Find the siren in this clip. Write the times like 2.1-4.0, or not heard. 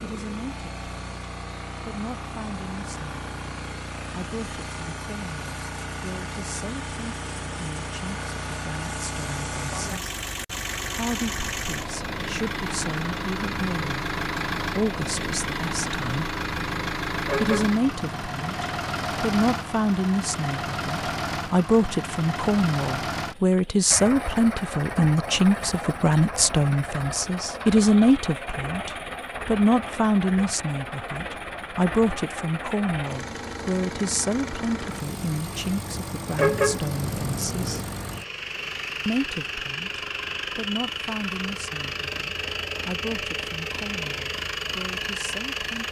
not heard.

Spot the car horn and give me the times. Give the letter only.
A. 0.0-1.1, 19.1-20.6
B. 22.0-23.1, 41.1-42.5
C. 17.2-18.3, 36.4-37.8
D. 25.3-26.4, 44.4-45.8
C.